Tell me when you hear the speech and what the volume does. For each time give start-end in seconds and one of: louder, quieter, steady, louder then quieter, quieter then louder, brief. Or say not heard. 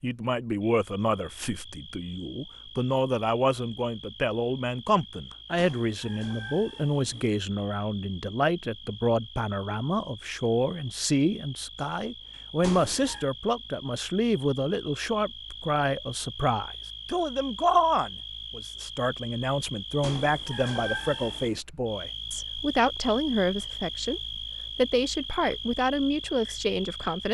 0.0-27.2 steady.